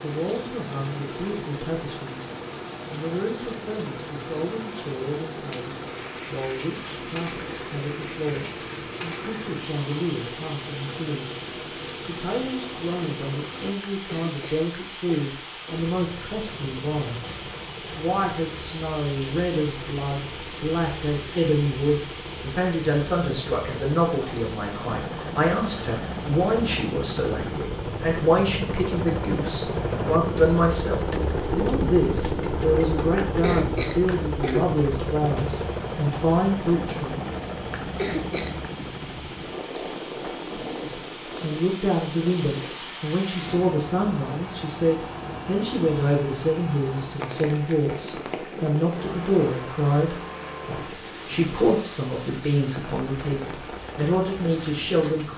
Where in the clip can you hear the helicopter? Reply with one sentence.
The helicopter can be heard from 0.0 to 13.8 s and from 15.7 to 51.8 s.